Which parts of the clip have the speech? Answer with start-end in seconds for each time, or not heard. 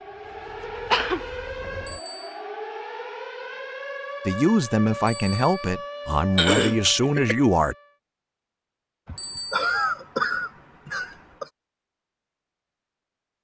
4.2-7.8.